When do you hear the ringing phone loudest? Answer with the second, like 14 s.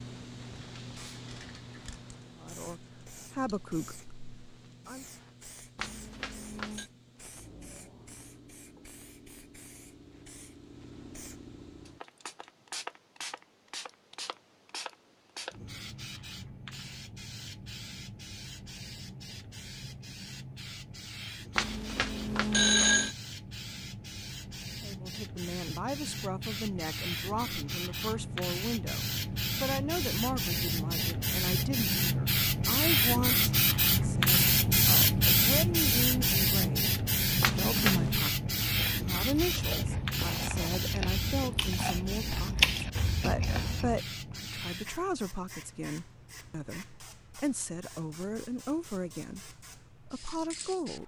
23 s.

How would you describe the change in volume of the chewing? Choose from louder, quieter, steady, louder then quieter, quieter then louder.
louder then quieter.